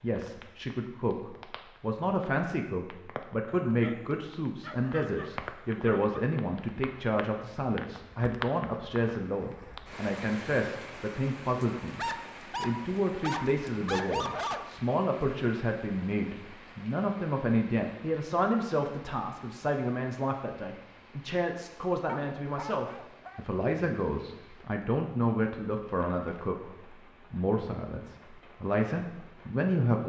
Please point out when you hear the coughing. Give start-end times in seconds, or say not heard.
not heard.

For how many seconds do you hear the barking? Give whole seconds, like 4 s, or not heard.
7 s.